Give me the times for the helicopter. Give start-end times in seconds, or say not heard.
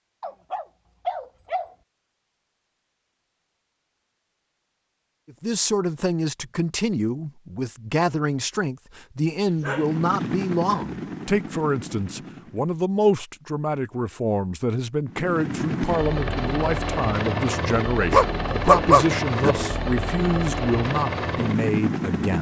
9.7-12.8, 15.1-22.3.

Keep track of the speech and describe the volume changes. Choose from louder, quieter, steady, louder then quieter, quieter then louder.
steady.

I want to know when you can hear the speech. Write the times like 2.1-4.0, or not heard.
5.2-22.3.